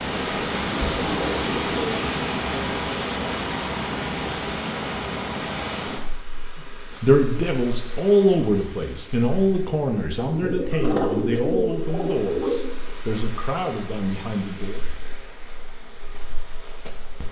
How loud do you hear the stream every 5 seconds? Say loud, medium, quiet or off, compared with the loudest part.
loud, medium, quiet, quiet.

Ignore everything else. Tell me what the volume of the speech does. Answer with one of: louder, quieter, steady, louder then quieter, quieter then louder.
quieter.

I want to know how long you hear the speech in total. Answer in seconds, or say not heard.
8 s.